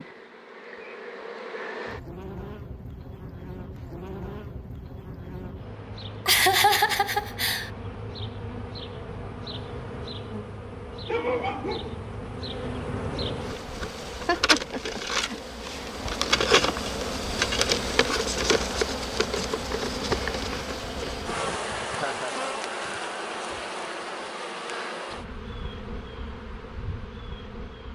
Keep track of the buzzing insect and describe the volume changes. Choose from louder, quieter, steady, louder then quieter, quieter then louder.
louder then quieter.